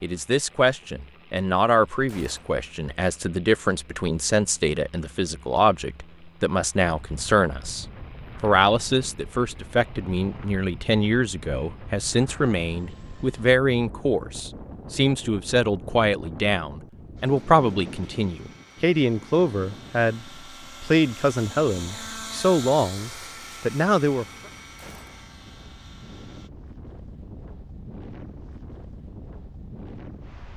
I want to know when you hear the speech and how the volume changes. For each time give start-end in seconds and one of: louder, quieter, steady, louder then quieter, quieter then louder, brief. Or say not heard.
0.0-24.2 steady.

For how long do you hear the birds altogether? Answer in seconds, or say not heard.
not heard.